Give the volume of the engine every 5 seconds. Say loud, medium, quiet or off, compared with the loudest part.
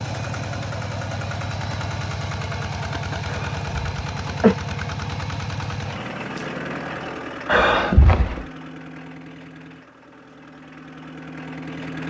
loud, loud, medium.